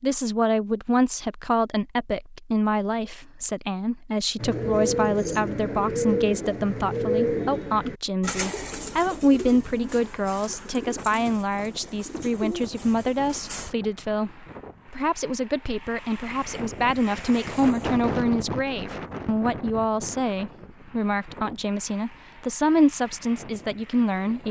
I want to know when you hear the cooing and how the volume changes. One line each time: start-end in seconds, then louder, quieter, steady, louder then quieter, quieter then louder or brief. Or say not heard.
4.4-13.8 quieter.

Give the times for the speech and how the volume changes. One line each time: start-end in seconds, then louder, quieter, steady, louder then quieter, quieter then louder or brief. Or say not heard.
0.0-24.4 steady.